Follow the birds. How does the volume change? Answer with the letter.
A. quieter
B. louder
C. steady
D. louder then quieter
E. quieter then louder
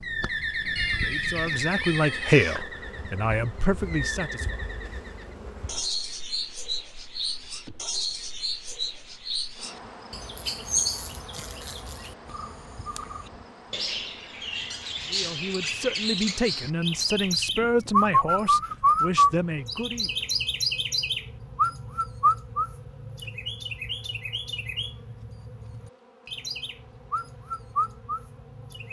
D.